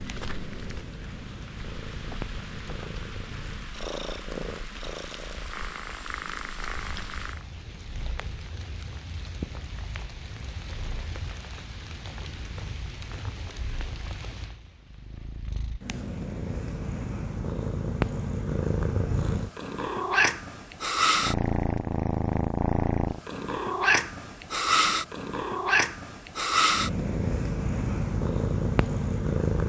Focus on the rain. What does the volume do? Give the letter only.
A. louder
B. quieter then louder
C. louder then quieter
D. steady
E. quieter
D.